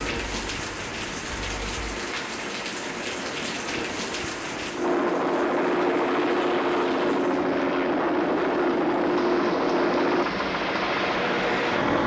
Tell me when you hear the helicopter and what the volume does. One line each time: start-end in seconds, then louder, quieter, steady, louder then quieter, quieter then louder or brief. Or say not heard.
0.0-12.0 louder.